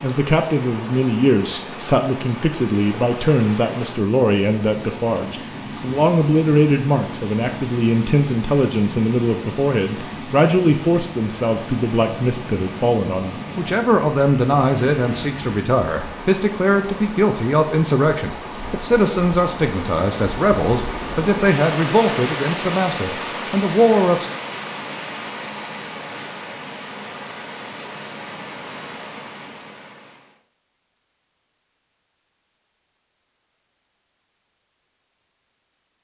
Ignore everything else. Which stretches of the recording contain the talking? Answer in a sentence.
You can hear the talking from 0.0 to 24.3 s.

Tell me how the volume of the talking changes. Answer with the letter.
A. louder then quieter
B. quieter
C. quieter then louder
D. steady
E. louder
D.